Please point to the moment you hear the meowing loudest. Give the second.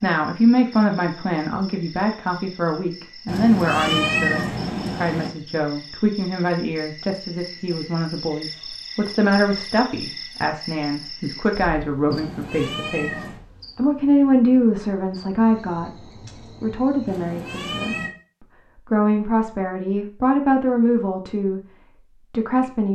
4 s.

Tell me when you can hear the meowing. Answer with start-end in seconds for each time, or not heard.
3.2-5.3, 12.1-13.4, 17.1-18.1.